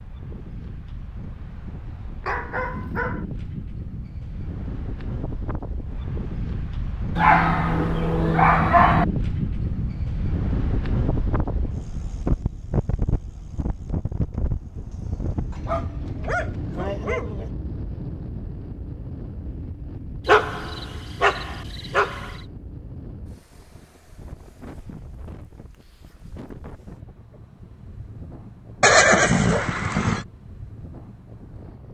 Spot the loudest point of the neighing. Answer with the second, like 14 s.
29 s.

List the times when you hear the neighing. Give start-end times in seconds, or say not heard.
28.8-30.2.